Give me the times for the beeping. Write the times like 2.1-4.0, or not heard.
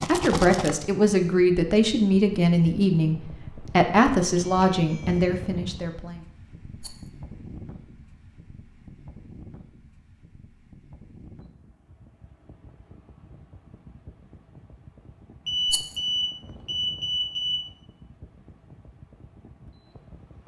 4.2-5.4, 15.4-17.6.